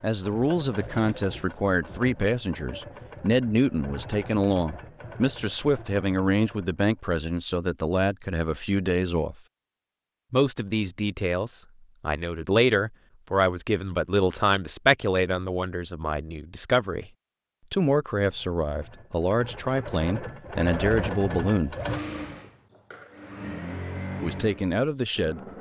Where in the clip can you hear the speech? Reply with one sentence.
The speech can be heard from 0.0 to 9.3 s, from 10.3 to 17.1 s, from 17.7 to 21.8 s and from 24.2 to 25.4 s.